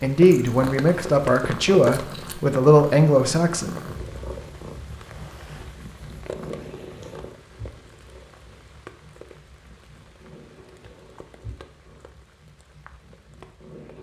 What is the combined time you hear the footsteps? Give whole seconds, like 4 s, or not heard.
not heard.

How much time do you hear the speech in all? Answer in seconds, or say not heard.
4 s.